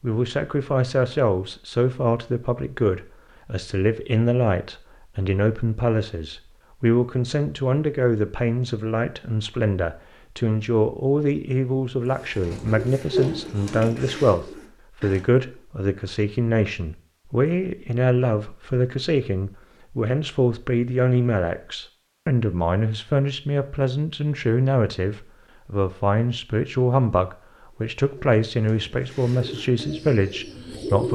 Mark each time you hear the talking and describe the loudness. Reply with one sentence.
You can hear the talking from 0.0 to 31.0 s, at a steady volume.